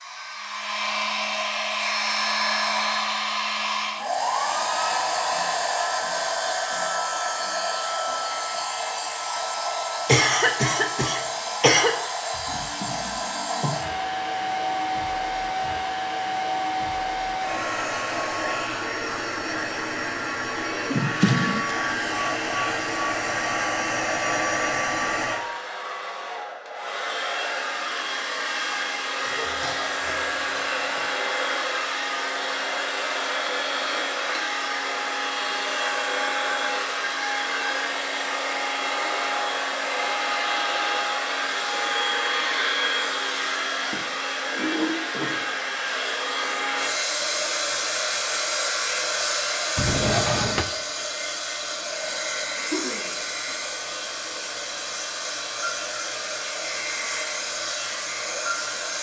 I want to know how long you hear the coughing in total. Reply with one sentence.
You can hear the coughing for 5 seconds altogether.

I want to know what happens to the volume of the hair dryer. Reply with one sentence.
The loudness of the hair dryer stays about the same.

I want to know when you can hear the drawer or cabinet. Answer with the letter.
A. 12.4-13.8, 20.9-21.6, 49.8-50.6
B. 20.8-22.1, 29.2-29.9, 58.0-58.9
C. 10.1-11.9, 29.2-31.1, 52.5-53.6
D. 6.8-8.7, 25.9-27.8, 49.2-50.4
A.